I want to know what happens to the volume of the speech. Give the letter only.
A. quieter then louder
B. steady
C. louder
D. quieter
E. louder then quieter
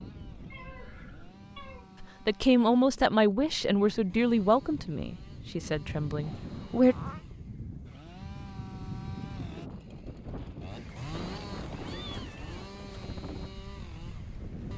D.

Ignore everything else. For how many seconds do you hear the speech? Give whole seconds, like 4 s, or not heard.
5 s.